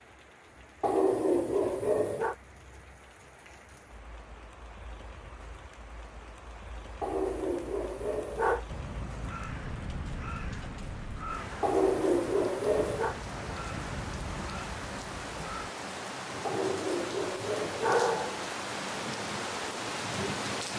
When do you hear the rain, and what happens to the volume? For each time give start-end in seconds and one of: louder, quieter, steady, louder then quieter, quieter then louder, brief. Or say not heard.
0.0-20.7 louder.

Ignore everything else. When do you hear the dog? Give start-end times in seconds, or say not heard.
0.8-2.4, 7.0-8.6, 11.6-13.2, 16.4-18.4.